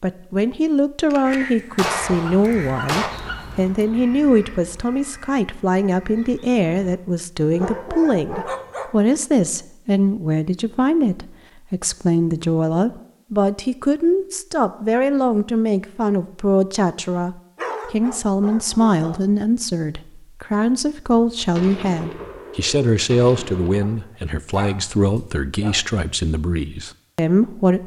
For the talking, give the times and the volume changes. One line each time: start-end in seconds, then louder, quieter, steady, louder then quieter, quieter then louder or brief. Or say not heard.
0.0-27.8 steady.